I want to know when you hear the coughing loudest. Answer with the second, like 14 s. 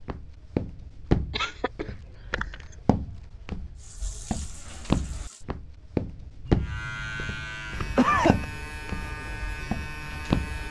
8 s.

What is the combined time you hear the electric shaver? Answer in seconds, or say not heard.
4 s.